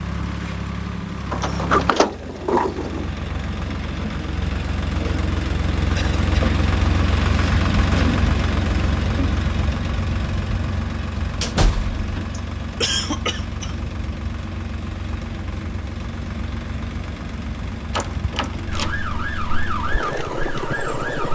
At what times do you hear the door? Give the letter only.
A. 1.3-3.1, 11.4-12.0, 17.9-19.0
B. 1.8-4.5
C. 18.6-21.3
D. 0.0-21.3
A.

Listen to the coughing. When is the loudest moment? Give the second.
13 s.